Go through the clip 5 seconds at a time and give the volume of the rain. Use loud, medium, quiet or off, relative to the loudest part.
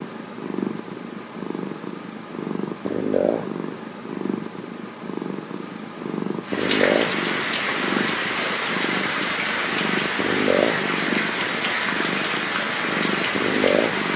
off, loud, loud.